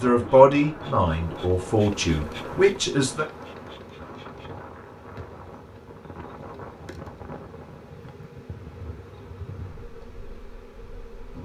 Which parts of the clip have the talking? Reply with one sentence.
You can hear the talking from 0.0 to 3.2 s.